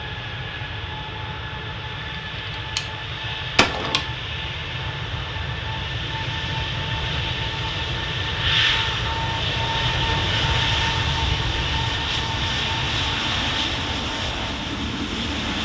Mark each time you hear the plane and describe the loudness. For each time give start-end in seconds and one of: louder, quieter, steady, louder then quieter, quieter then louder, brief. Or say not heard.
0.0-15.5 louder.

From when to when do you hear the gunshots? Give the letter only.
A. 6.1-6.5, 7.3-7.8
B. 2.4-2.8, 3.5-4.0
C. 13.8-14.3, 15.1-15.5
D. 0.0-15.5
B.